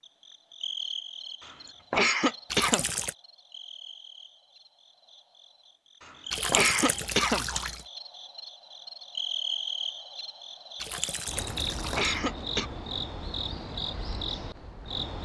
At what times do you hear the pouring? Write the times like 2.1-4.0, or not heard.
2.5-3.1, 6.3-7.8, 10.8-12.2.